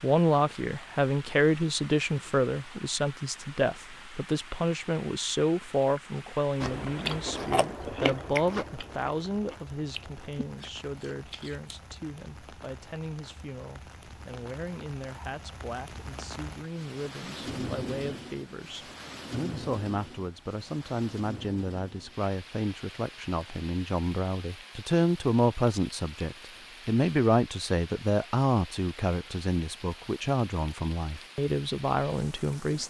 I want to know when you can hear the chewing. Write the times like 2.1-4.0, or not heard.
6.6-11.9.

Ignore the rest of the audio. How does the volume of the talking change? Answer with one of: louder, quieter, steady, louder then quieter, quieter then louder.
quieter then louder.